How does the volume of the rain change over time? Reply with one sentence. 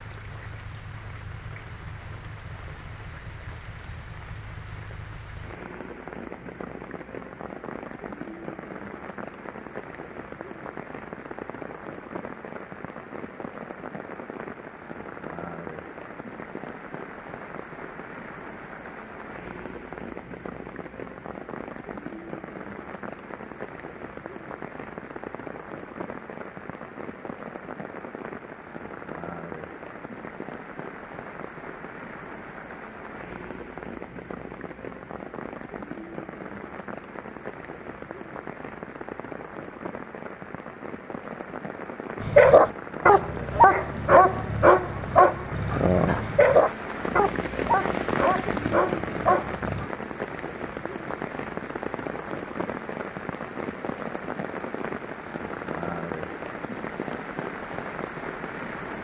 The volume of the rain goes up.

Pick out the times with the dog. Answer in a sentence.
You can hear the dog from 42.2 to 49.9 s.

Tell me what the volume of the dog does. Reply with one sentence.
The loudness of the dog goes down.